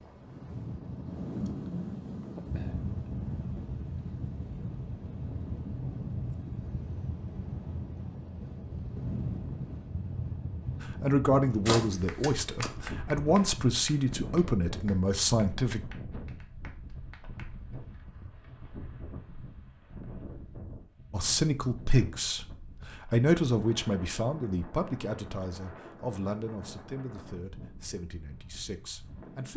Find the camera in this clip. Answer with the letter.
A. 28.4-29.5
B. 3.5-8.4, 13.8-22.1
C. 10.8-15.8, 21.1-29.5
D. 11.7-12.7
D.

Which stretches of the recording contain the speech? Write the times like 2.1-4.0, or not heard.
10.8-15.8, 21.1-29.5.